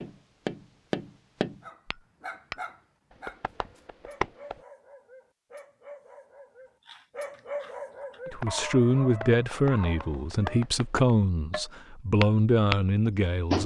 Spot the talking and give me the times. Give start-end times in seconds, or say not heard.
8.3-13.6.